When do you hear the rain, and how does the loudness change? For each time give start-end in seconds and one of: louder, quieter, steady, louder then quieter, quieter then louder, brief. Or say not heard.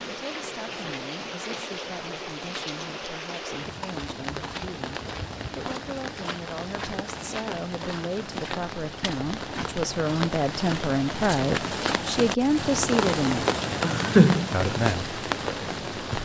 0.0-16.2 louder.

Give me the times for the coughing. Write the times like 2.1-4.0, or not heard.
13.8-14.7.